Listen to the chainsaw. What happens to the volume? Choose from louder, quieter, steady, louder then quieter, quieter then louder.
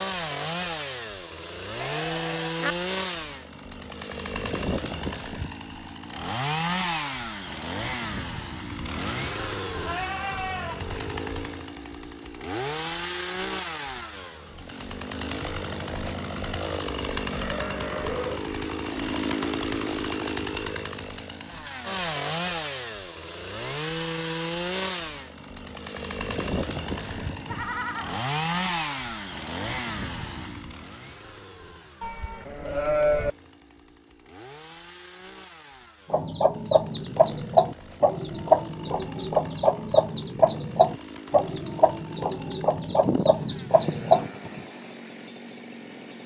quieter.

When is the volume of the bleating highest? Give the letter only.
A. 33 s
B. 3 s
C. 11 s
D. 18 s
A.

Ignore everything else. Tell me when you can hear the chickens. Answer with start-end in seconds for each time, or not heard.
36.1-44.3.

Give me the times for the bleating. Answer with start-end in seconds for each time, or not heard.
1.8-2.8, 9.7-11.0, 17.3-18.4, 26.9-28.2, 32.0-33.3, 42.8-44.6.